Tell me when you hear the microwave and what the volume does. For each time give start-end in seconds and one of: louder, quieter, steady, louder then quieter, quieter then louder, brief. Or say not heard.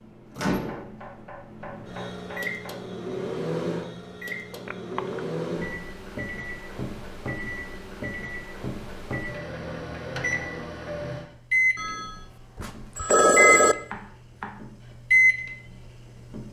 0.0-16.4 louder.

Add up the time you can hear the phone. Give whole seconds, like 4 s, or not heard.
3 s.